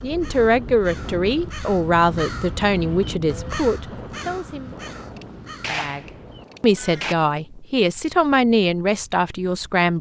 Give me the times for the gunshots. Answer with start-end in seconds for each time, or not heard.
5.2-7.2.